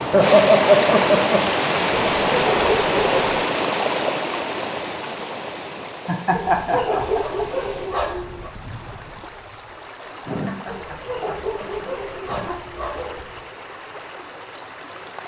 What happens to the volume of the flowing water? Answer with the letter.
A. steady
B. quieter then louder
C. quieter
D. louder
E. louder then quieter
C.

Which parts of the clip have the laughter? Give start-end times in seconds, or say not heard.
0.1-1.4, 6.0-7.5, 10.2-12.6.